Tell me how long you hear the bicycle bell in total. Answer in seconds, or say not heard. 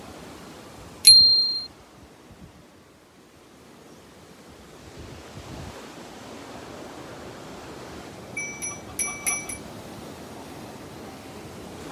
2 s.